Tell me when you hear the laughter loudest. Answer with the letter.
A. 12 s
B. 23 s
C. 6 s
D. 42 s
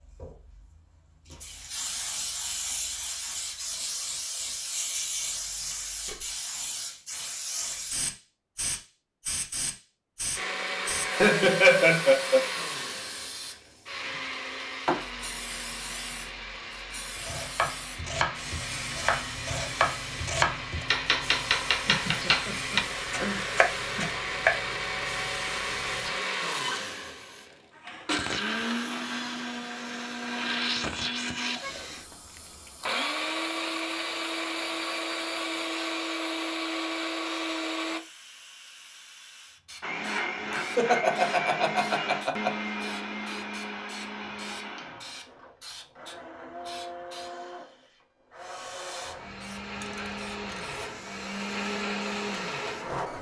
A.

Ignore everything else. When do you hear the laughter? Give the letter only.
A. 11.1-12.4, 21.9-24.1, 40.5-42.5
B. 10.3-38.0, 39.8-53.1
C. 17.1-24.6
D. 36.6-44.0
A.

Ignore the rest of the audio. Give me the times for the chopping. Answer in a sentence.
The chopping can be heard from 17.1 to 24.6 s.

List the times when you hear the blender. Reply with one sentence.
The blender can be heard from 10.3 to 38.0 s and from 39.8 to 53.1 s.